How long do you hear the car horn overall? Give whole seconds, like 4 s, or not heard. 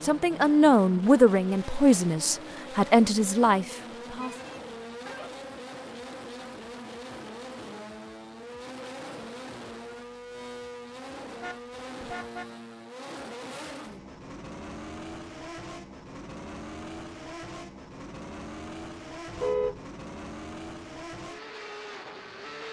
3 s.